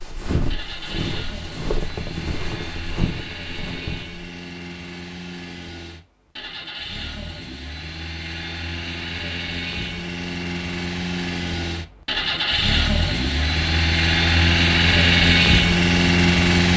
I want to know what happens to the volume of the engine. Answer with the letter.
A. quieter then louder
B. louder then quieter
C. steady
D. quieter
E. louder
E.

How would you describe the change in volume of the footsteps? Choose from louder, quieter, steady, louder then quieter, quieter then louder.
quieter.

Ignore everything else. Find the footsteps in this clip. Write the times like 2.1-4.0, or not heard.
0.0-4.2.